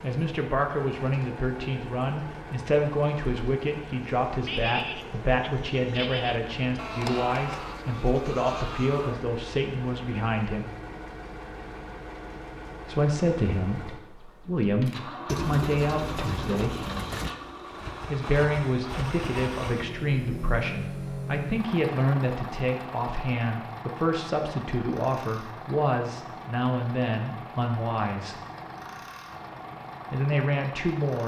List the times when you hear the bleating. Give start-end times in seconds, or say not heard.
4.4-9.2.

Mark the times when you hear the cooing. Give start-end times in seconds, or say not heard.
15.2-17.3.